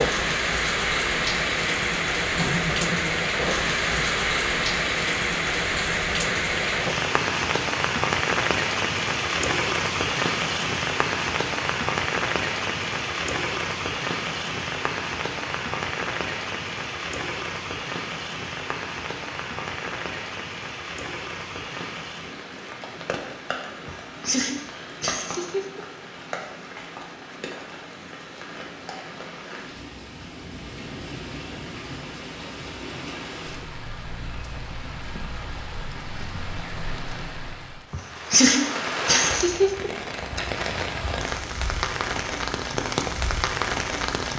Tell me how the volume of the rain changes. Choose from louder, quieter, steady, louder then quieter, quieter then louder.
quieter then louder.